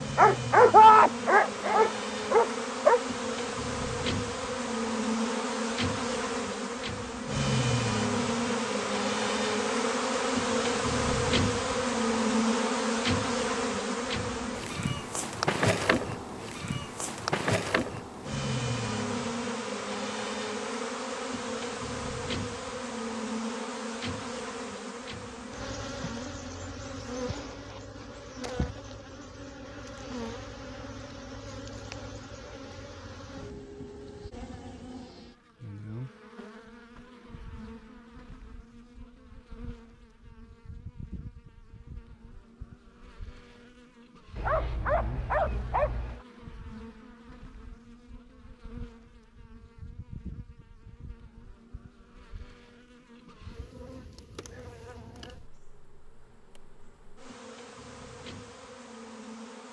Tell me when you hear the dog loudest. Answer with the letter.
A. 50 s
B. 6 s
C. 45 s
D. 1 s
D.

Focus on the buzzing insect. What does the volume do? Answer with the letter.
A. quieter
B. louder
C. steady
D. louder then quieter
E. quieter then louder
A.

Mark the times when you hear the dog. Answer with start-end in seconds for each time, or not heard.
0.1-3.0, 44.4-46.2.